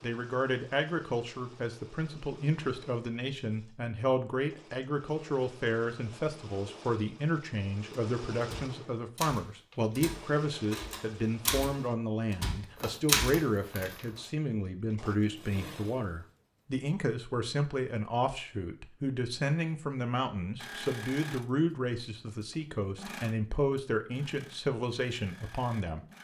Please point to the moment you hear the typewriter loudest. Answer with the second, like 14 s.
13 s.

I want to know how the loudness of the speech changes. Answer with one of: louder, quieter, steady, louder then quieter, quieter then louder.
steady.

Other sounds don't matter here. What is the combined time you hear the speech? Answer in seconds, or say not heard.
26 s.